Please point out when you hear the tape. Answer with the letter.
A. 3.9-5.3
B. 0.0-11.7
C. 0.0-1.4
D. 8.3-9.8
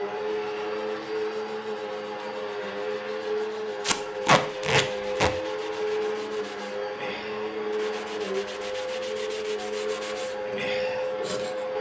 A.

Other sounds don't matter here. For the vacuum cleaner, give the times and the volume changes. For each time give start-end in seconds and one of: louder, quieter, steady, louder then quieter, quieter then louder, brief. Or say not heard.
0.0-11.7 steady.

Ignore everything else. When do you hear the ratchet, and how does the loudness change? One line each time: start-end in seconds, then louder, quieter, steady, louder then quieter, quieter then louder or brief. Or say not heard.
not heard.